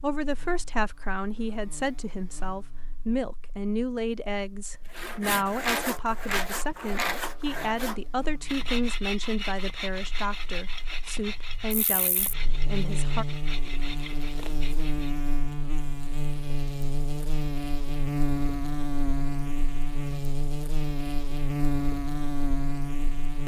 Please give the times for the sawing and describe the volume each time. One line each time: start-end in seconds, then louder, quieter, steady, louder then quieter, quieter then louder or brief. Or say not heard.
4.9-15.2 quieter.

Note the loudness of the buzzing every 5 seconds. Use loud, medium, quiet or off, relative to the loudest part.
quiet, quiet, medium, loud, loud.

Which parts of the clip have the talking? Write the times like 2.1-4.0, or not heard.
0.0-13.2.